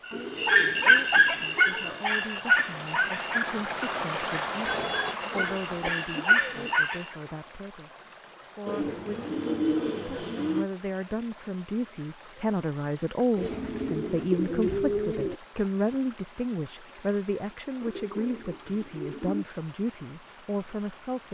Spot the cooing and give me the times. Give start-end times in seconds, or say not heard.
0.1-2.0, 4.6-6.8, 8.7-10.7, 13.3-15.4, 17.8-19.4.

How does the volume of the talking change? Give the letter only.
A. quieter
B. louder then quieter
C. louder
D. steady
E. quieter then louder
C.